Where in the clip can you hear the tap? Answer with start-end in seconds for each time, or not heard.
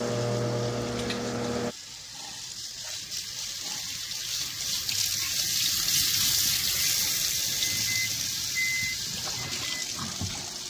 0.0-10.6.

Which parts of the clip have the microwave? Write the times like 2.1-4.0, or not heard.
0.0-1.8, 6.8-10.6.